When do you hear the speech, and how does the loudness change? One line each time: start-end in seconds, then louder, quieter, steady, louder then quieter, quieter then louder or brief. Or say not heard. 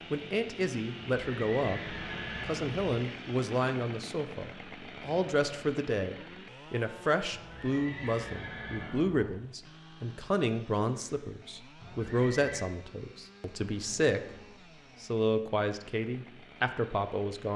0.1-14.3 steady
15.0-17.5 brief.